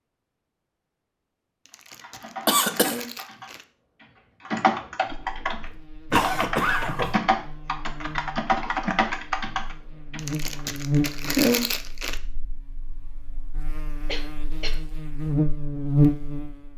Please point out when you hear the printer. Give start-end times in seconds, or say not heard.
not heard.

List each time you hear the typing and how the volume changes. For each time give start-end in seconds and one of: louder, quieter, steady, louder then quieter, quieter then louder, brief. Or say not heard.
1.7-10.7 louder.